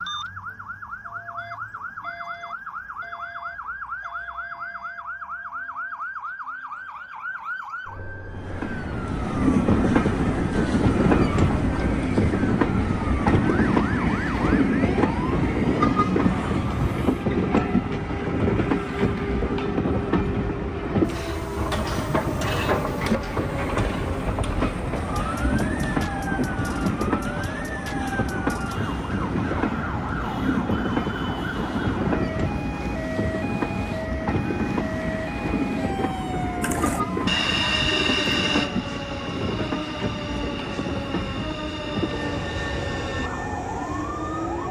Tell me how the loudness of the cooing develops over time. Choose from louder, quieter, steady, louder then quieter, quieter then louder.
quieter.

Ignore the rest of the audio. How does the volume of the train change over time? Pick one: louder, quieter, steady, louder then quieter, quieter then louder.
quieter.